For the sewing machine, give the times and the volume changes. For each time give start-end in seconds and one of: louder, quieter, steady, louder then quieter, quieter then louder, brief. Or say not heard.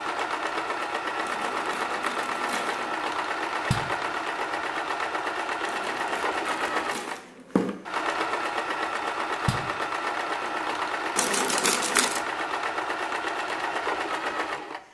0.0-14.8 steady.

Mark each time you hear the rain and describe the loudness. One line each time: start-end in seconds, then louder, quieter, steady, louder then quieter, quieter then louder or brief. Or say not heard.
not heard.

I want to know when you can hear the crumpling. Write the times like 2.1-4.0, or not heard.
1.2-2.9, 5.7-7.8, 11.2-12.2.